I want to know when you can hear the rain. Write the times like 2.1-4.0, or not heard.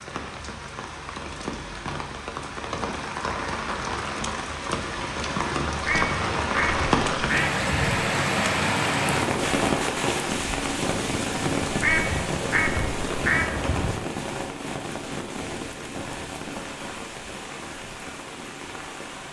0.0-19.2.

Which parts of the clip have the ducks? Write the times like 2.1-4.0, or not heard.
5.8-8.0, 11.8-13.9.